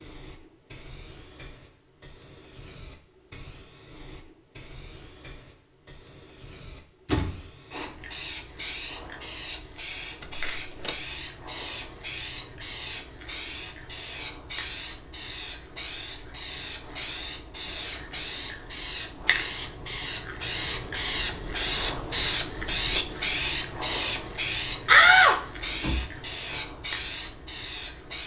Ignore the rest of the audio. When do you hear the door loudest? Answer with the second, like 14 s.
25 s.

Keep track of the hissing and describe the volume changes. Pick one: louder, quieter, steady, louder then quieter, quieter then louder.
louder.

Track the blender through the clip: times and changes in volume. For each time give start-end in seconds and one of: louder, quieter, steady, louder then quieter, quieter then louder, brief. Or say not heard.
not heard.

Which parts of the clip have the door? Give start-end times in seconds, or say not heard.
7.0-7.5, 10.2-11.0, 24.9-26.6.